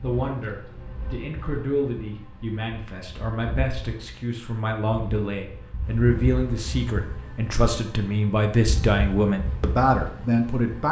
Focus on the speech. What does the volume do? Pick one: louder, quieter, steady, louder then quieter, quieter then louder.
louder.